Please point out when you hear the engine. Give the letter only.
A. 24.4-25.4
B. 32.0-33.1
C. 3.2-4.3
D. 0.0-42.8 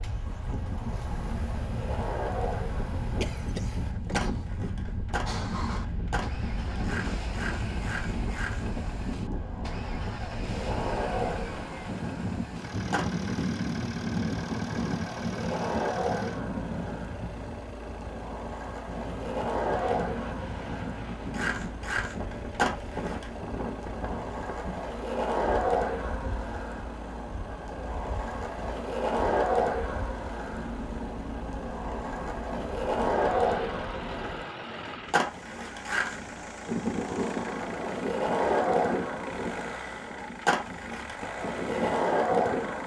D.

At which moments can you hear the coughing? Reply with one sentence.
The coughing can be heard from 3.2 to 4.3 s.